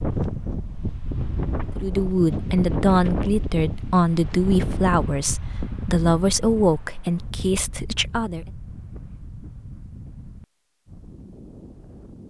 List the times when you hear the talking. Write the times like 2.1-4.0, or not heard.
1.8-8.4.